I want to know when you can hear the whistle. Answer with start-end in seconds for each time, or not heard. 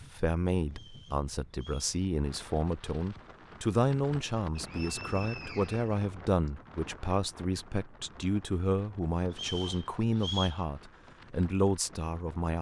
0.7-1.9, 4.5-6.5, 9.3-10.6.